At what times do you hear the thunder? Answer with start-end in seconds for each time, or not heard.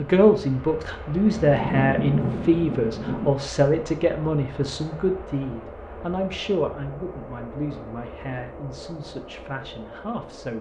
1.3-3.3.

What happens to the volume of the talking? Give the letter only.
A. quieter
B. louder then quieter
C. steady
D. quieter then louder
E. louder
A.